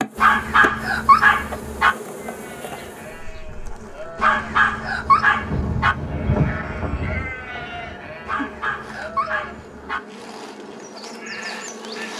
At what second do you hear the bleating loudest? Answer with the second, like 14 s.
6 s.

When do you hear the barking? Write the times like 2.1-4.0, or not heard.
0.1-1.9, 4.2-6.0, 8.2-10.0.